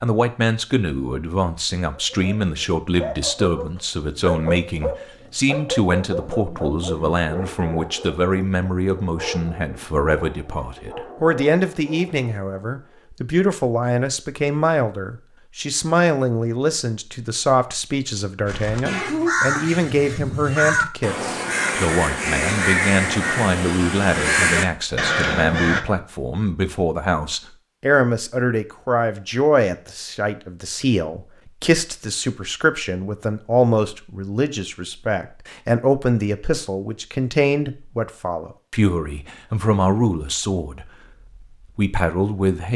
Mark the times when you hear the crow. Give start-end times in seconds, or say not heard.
18.4-25.9.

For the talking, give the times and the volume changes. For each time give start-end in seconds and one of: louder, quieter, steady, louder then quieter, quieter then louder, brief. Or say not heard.
0.0-42.7 steady.